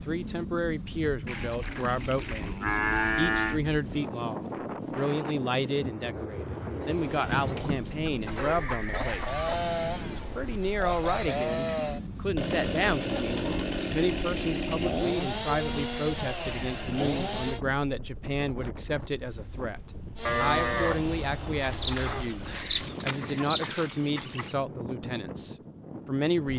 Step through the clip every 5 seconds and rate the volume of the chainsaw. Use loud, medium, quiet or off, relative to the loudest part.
off, loud, loud, loud, medium, off.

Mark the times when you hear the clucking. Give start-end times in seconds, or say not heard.
6.8-9.6, 21.6-24.6.